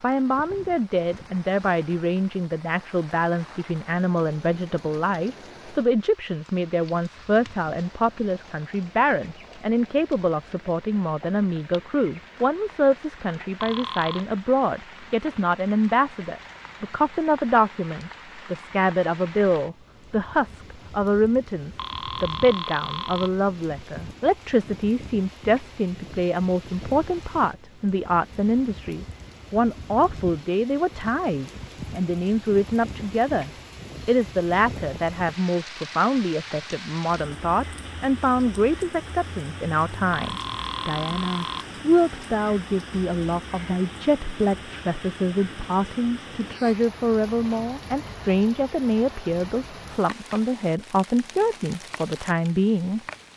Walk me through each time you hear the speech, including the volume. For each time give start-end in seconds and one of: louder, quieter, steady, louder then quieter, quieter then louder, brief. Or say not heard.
0.0-53.0 steady.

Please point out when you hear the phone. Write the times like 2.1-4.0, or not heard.
13.6-14.2, 21.8-23.3, 40.1-41.6.